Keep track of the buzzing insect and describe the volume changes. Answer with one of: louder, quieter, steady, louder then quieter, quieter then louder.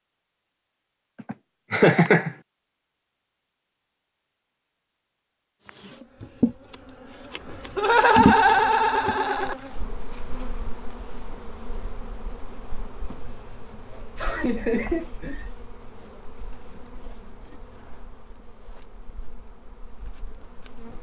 quieter.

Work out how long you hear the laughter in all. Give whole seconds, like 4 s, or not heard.
4 s.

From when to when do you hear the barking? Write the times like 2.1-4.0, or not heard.
not heard.